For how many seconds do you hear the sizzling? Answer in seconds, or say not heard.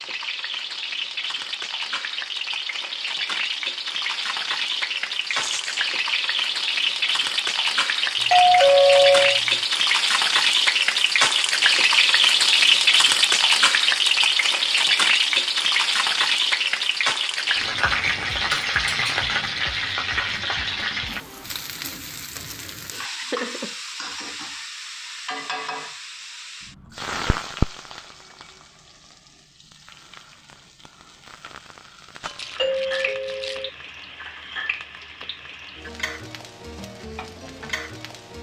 38 s.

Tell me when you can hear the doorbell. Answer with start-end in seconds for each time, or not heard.
8.2-9.4, 32.5-33.7.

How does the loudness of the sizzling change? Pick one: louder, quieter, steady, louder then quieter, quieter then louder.
louder then quieter.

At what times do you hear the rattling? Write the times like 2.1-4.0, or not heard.
5.2-5.8, 32.2-33.7.